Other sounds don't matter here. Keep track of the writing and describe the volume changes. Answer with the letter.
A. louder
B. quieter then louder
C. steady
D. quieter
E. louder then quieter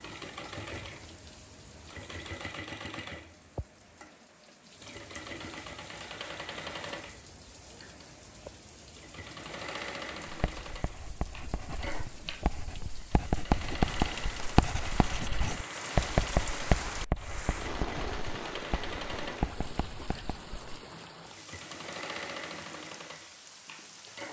E.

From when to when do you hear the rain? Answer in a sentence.
You can hear the rain from 0.0 to 24.2 s.